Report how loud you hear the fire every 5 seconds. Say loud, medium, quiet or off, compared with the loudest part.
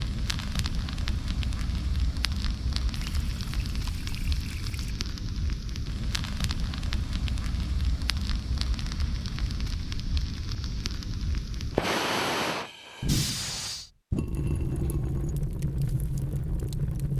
medium, medium, loud, loud.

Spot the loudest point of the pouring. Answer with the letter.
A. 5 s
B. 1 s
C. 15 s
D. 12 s
C.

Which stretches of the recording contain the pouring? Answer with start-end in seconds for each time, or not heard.
3.0-5.0, 14.2-15.3.